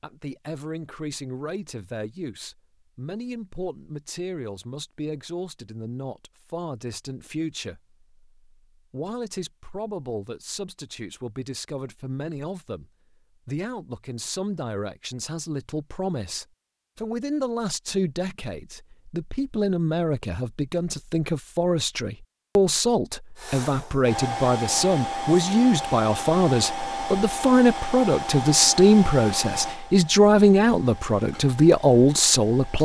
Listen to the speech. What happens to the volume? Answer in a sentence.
The volume of the speech goes up.